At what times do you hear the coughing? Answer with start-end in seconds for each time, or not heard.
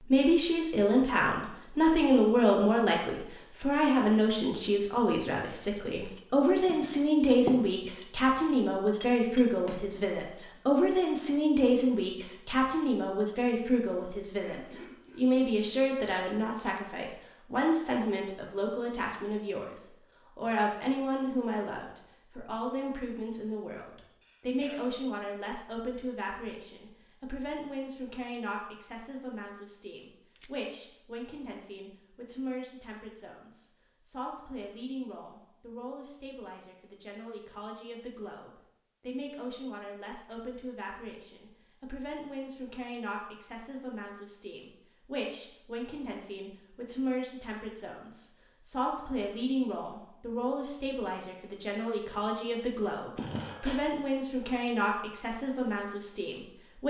14.4-15.2, 24.2-24.8, 53.1-53.8.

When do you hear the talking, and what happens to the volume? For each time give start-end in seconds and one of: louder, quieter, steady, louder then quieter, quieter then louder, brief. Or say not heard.
0.0-56.8 quieter then louder.